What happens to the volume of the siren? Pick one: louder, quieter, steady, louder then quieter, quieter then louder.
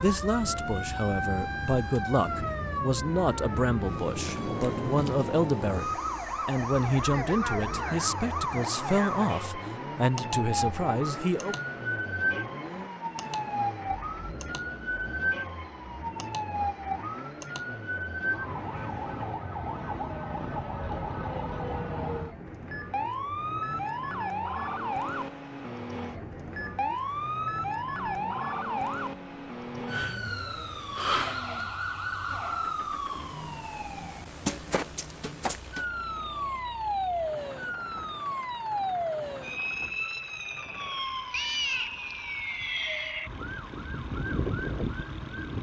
steady.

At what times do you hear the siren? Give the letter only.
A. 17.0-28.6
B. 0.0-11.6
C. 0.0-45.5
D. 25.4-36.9
C.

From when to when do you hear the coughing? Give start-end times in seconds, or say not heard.
not heard.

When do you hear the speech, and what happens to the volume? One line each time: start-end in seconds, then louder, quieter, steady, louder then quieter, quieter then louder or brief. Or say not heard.
0.0-11.6 steady.